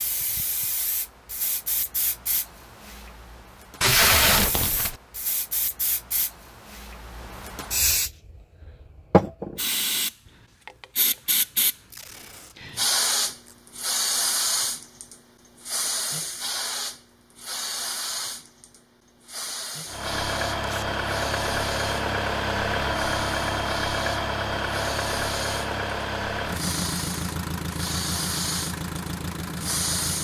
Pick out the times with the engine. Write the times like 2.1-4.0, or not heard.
19.9-30.1.